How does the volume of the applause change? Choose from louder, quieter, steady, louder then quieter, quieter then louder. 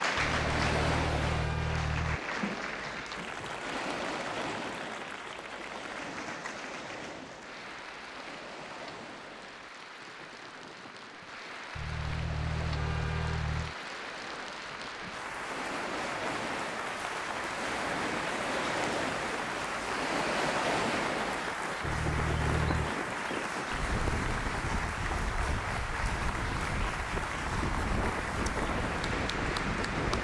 quieter then louder.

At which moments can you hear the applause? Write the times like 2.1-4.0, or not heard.
0.0-30.1.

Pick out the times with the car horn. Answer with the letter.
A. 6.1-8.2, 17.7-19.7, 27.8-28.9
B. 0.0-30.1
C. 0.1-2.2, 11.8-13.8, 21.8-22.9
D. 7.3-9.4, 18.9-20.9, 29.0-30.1
C.